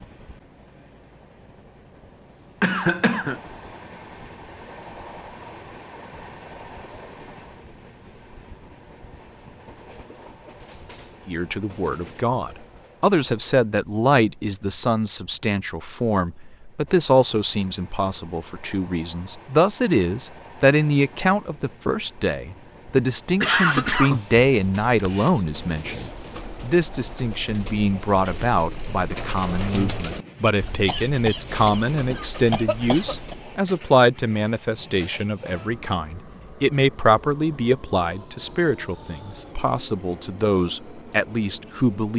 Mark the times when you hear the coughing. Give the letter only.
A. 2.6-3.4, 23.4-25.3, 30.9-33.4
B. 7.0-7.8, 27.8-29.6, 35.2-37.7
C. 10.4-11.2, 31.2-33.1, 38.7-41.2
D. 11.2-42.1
A.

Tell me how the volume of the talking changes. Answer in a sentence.
The loudness of the talking stays about the same.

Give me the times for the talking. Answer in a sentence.
The talking can be heard from 11.2 to 42.1 s.